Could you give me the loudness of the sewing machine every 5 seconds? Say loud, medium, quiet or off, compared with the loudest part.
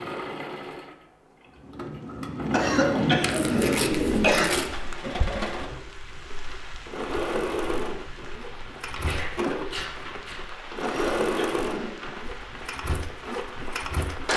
medium, loud, loud.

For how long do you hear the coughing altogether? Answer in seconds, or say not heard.
3 s.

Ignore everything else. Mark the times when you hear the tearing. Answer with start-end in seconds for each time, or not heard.
3.2-4.7, 8.3-10.4.